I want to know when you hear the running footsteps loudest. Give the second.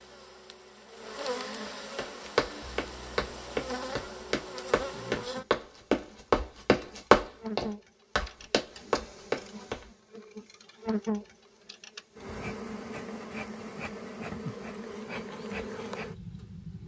7 s.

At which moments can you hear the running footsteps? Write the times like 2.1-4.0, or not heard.
1.9-9.8.